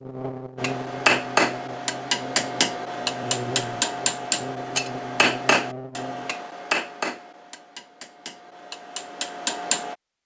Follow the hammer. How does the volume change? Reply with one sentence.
The loudness of the hammer goes down.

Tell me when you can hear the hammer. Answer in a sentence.
The hammer can be heard from 0.6 to 9.9 s.